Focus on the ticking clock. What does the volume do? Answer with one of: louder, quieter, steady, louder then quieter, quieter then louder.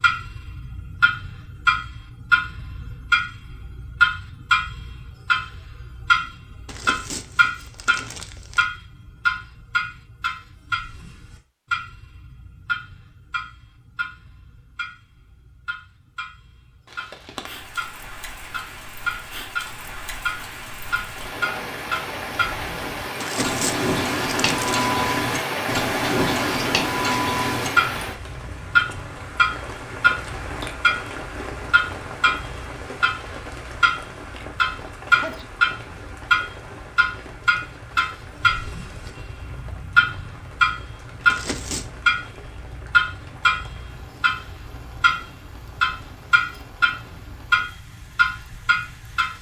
quieter then louder.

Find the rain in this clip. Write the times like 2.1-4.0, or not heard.
16.9-49.3.